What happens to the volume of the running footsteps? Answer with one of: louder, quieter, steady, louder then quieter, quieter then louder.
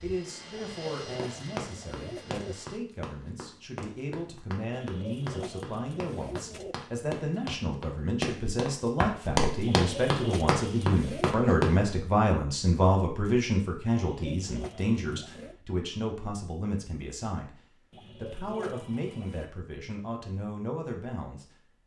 louder.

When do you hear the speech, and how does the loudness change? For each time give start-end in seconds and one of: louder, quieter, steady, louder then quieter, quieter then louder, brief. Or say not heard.
0.0-21.7 louder then quieter.